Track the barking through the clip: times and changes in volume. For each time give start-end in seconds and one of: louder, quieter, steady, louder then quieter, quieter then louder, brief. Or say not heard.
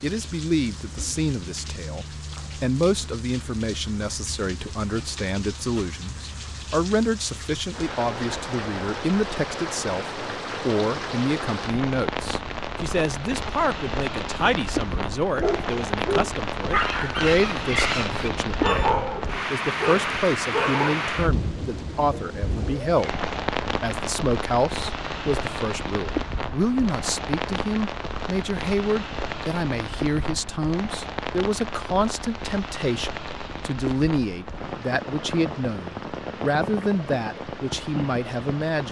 15.3-21.1 steady.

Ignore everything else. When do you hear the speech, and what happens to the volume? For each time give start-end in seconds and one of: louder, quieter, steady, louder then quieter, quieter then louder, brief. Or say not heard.
0.0-38.8 steady.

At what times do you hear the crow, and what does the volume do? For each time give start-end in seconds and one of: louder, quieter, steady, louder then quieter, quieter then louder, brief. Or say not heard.
not heard.